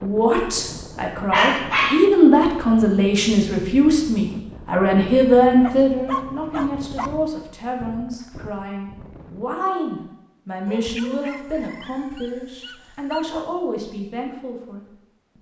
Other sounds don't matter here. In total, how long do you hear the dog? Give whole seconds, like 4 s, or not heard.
5 s.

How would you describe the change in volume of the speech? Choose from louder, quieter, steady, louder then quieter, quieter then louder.
quieter.